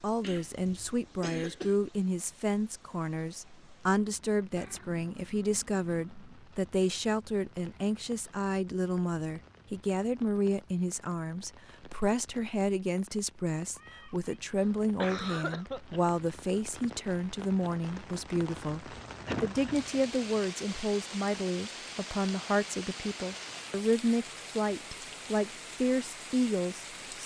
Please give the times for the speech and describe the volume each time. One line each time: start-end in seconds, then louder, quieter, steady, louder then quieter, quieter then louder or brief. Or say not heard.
0.0-27.2 steady.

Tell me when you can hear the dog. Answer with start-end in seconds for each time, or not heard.
not heard.